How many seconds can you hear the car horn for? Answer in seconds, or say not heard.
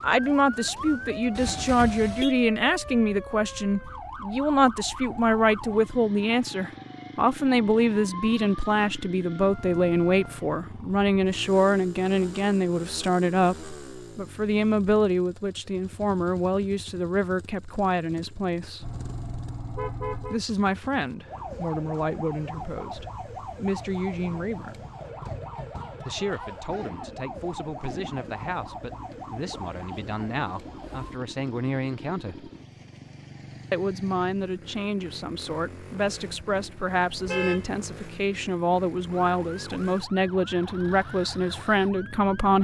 4 s.